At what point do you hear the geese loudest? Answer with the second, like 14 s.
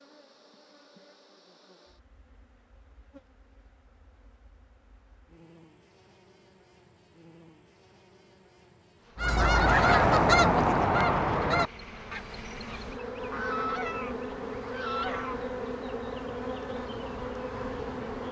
10 s.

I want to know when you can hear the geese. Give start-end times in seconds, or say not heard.
9.2-15.6.